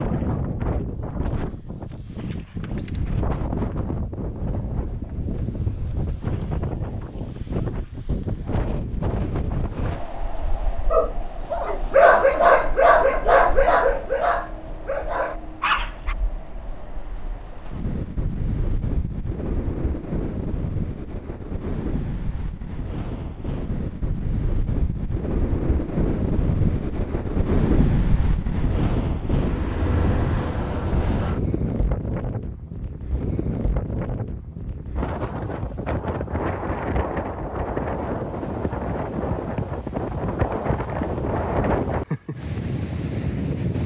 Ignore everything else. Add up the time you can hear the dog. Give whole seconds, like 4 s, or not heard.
5 s.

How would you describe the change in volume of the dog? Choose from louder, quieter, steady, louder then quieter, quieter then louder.
quieter.